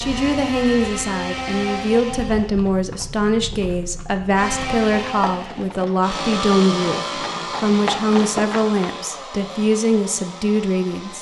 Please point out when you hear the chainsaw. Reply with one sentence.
You can hear the chainsaw from 0.0 to 2.5 s and from 4.3 to 11.1 s.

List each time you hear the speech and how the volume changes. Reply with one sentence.
You can hear the speech from 0.0 to 11.1 s, at a steady volume.